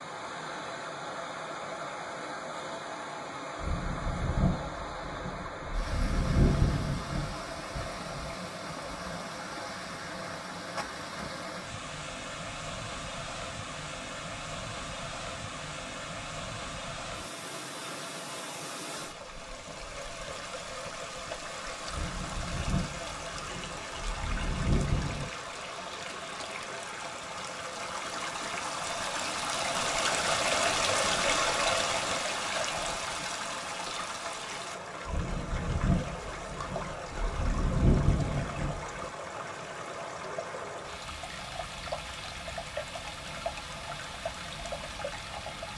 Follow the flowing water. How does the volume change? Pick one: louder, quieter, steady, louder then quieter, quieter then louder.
louder then quieter.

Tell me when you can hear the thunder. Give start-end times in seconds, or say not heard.
3.6-8.3, 21.9-25.4, 35.0-39.0.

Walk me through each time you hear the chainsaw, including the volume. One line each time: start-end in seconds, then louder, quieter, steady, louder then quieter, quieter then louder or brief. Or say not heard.
not heard.